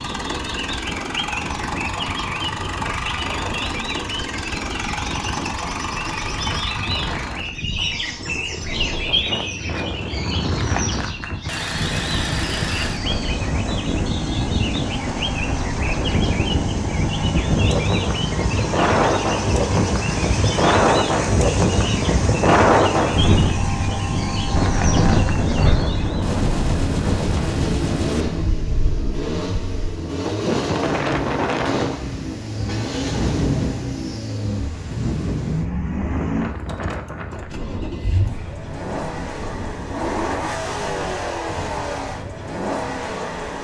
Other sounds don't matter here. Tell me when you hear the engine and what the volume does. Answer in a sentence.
You can hear the engine from 0.0 to 43.5 s, at a steady volume.